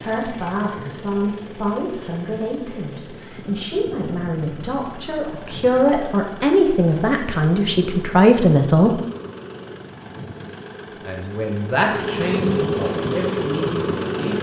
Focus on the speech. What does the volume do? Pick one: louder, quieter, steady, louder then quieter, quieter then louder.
louder then quieter.